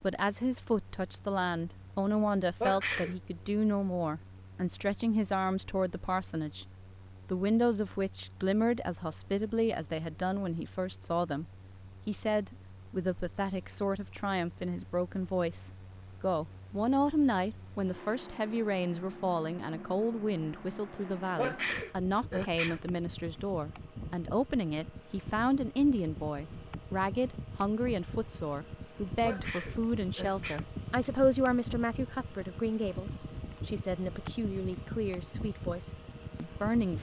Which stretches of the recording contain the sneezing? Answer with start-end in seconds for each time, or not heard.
2.6-3.1, 21.4-22.8, 29.2-30.6.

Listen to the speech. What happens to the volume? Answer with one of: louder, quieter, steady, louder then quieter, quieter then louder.
steady.